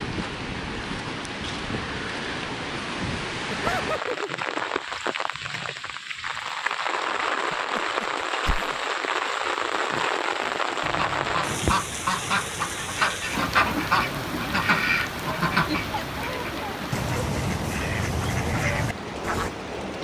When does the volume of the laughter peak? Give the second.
4 s.